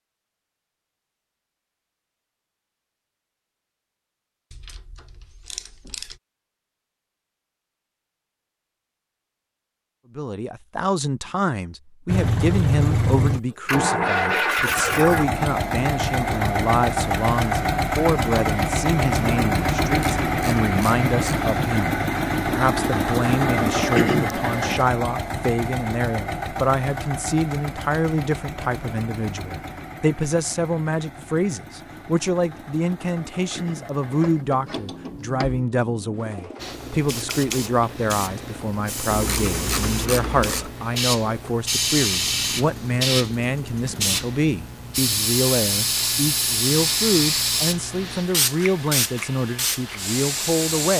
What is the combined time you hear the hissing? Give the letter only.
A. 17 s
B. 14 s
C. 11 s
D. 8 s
B.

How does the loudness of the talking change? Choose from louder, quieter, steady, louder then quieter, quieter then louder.
steady.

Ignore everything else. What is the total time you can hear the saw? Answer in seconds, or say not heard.
not heard.